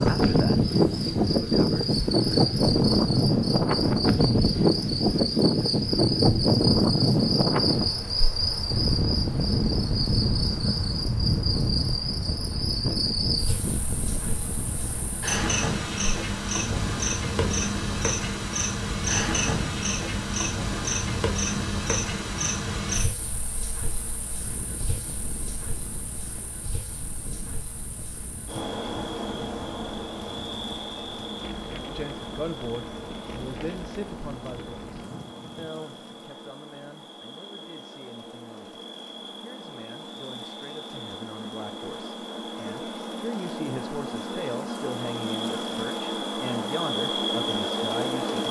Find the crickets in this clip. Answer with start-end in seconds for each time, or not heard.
0.0-48.4.